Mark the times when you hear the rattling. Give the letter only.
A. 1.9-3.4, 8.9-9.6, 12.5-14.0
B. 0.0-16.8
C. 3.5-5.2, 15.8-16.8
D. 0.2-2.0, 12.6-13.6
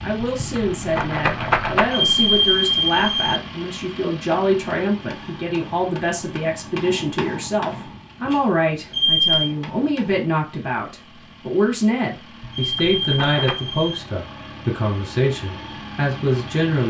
D.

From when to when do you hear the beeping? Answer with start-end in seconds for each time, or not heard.
1.9-3.4, 8.9-9.6, 12.5-14.0.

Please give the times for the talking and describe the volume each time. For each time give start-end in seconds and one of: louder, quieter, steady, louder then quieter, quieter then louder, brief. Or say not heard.
0.0-16.8 steady.